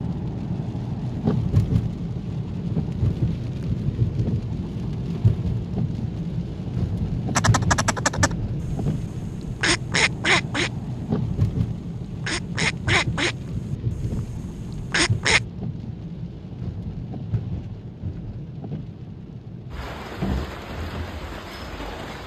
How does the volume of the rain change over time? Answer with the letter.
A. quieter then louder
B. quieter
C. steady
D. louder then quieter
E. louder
B.